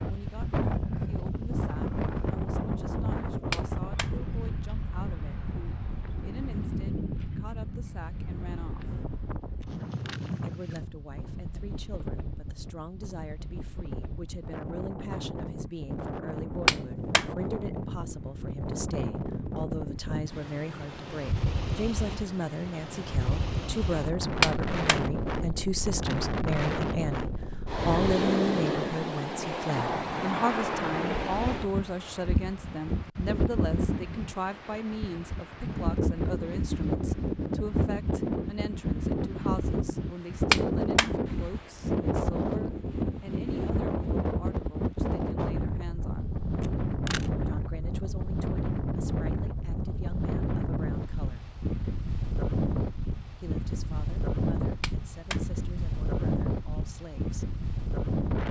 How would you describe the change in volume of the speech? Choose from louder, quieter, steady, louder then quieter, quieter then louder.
louder then quieter.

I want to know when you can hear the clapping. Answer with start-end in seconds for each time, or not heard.
3.5-4.1, 16.6-17.2, 24.4-25.0, 40.5-41.1, 54.8-55.4.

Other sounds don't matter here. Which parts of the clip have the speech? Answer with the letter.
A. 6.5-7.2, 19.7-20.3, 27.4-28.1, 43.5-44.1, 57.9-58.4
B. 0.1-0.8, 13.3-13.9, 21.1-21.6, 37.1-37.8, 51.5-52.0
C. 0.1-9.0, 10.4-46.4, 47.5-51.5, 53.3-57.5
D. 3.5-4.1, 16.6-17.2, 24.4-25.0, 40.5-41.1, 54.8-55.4
C.